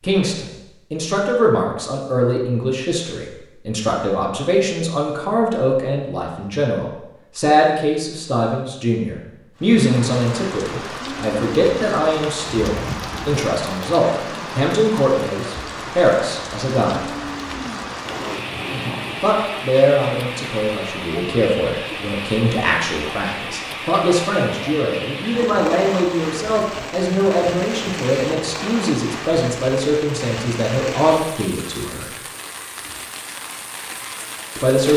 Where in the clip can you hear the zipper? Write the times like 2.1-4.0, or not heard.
18.1-19.3.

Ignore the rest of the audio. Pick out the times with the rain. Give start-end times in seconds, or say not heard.
9.6-34.9.